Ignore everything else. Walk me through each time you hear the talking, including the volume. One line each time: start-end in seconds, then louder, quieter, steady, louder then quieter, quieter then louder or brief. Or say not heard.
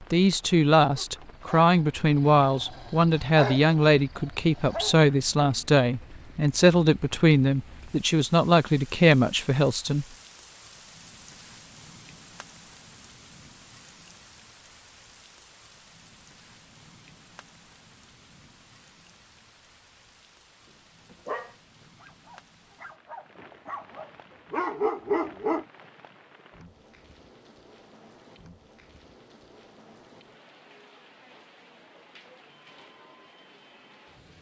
0.0-10.1 steady.